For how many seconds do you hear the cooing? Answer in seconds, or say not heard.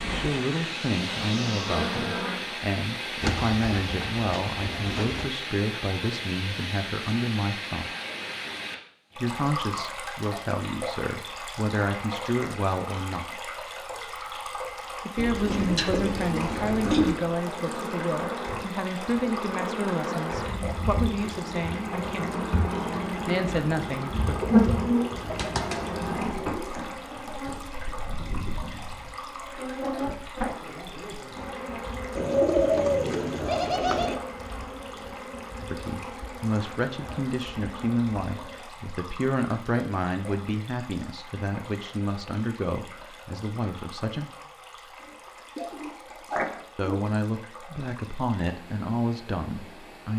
10 s.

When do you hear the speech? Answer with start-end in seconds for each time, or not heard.
0.1-7.9, 9.2-13.4, 15.1-22.4, 23.2-24.4, 35.6-44.3, 46.8-50.1.